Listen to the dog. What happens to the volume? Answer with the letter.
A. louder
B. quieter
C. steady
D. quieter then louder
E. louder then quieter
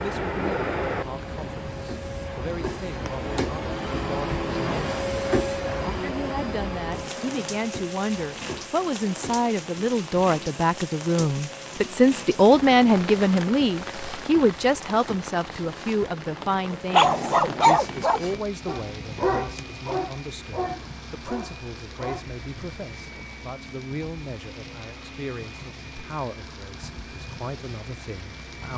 B.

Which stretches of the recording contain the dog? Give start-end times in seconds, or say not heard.
16.7-22.2.